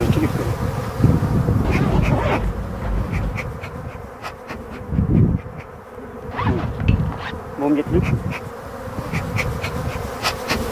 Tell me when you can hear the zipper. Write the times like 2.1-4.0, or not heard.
1.6-3.5, 6.3-7.3.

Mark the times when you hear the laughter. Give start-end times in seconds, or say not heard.
not heard.